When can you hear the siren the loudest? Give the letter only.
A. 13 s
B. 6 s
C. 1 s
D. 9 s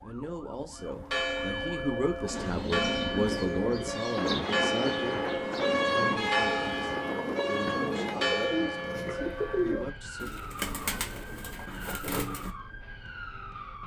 B.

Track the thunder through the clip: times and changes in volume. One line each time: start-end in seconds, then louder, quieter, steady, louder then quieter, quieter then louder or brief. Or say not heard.
4.2-8.2 steady.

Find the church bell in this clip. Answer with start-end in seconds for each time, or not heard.
0.8-9.8.